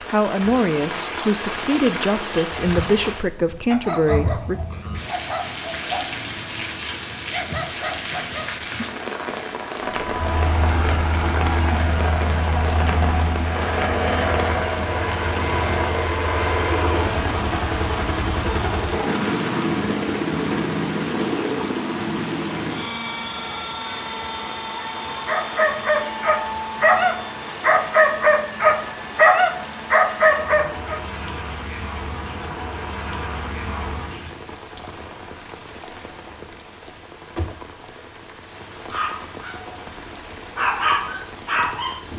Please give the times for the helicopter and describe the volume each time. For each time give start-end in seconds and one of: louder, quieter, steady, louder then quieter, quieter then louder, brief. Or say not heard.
9.8-34.4 quieter.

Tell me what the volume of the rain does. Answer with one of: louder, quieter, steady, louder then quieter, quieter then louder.
quieter.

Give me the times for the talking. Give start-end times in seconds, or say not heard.
0.0-4.5.